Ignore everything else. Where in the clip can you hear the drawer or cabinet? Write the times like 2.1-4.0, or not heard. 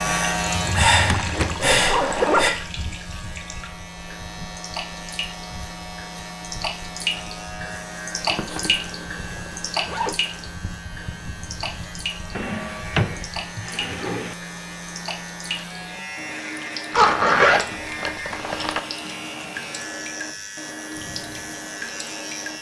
0.5-1.7, 12.3-14.3.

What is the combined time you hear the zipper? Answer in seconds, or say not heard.
5 s.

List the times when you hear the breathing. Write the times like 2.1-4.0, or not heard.
0.0-2.5.